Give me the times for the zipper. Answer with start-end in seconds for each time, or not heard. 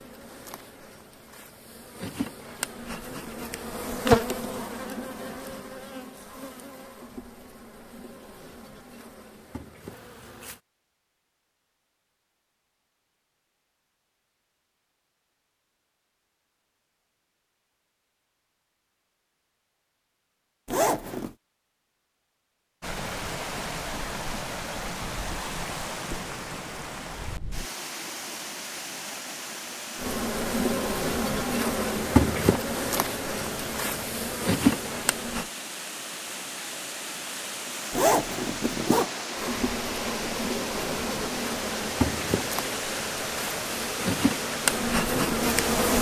20.6-21.4, 37.9-39.1.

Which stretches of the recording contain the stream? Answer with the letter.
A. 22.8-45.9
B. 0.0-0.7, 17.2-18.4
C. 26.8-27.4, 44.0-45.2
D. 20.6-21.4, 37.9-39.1
A.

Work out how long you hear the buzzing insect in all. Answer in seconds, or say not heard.
23 s.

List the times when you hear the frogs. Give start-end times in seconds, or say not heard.
not heard.